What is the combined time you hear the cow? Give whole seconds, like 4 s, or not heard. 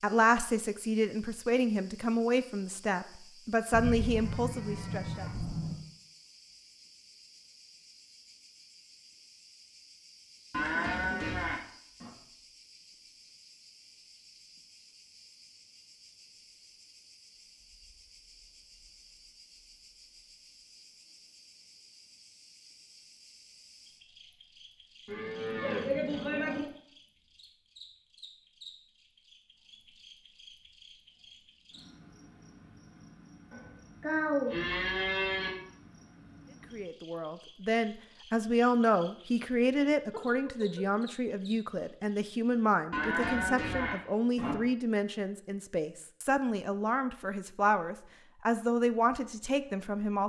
9 s.